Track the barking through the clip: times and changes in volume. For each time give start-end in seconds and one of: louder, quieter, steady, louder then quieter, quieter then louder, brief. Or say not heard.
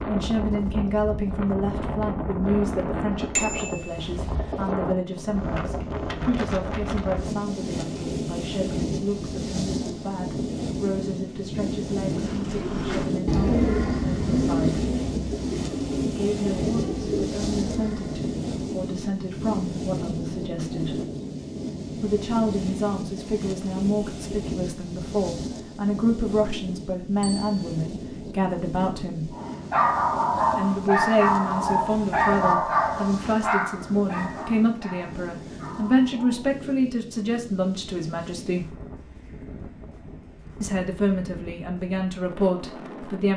29.3-36.5 quieter.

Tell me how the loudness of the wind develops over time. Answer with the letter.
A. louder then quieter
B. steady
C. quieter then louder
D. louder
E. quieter
E.